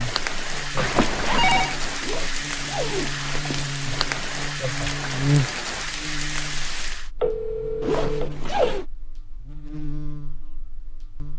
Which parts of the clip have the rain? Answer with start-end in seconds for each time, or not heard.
0.0-7.1.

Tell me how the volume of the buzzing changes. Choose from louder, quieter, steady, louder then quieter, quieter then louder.
louder then quieter.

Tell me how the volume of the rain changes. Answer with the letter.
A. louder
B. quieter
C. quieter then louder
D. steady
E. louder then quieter
D.